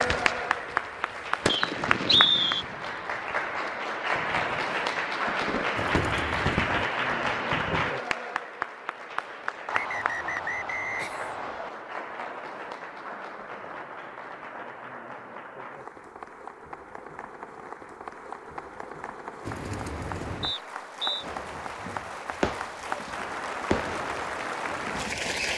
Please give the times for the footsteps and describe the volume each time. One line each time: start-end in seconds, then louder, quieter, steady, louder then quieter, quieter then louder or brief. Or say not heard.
not heard.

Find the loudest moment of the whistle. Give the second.
2 s.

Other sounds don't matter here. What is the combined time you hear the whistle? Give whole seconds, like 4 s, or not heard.
4 s.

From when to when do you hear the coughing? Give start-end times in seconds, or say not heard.
5.8-6.9, 9.7-11.6, 19.4-20.6.